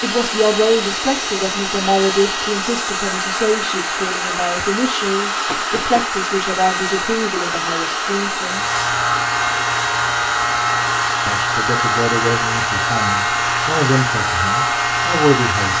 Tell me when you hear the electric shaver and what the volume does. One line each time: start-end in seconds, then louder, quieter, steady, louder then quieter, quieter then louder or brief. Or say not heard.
8.4-15.7 steady.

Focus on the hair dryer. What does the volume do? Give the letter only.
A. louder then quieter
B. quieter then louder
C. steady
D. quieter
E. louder
C.